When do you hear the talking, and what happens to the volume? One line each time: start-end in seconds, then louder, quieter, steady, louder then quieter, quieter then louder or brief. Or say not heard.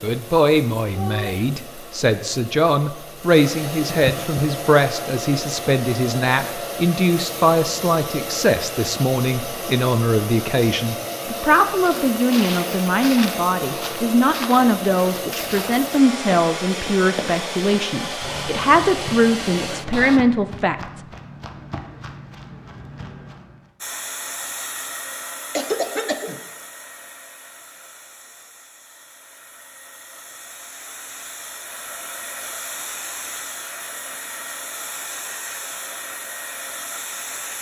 0.0-21.0 steady.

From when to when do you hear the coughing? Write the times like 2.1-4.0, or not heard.
3.9-4.5, 25.5-26.4.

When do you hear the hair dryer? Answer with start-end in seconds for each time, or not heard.
0.0-20.2, 23.8-37.5.